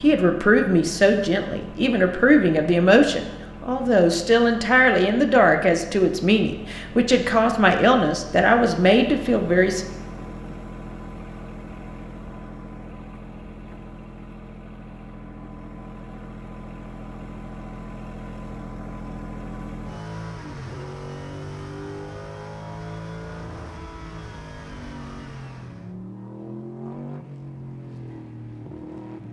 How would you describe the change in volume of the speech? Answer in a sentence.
The volume of the speech stays about the same.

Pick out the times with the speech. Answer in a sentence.
The speech can be heard from 0.0 to 9.8 s.